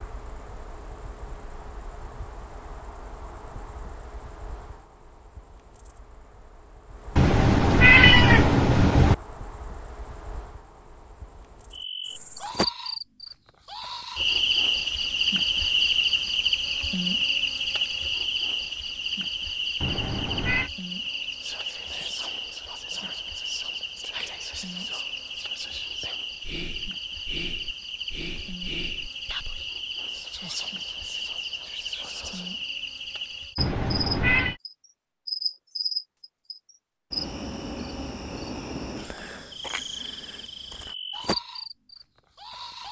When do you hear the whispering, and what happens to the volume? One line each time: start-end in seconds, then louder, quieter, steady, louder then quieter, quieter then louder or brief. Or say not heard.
21.0-32.6 steady.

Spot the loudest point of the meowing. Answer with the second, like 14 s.
8 s.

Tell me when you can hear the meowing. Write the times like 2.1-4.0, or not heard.
7.2-9.2, 19.8-20.7, 33.5-34.5.